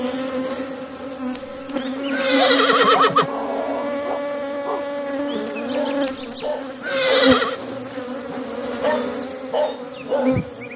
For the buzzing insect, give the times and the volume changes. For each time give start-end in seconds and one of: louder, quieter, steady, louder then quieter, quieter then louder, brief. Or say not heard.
0.0-10.7 steady.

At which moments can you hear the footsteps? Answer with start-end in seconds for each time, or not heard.
not heard.